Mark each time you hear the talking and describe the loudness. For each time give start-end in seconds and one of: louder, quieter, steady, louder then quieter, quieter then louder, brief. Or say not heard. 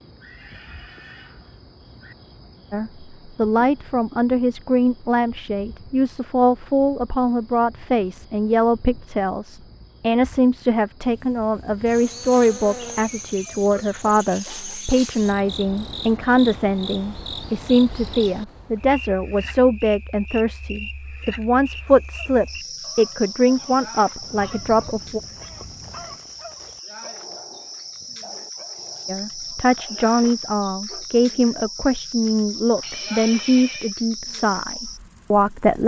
2.7-25.2 steady
29.1-35.8 steady.